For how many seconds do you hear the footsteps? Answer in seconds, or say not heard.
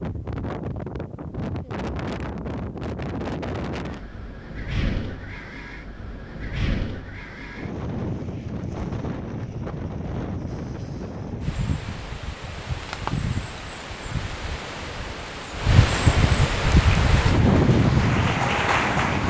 not heard.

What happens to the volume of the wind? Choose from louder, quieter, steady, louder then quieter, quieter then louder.
louder.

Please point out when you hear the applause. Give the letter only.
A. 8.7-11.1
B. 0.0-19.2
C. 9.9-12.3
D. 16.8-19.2
D.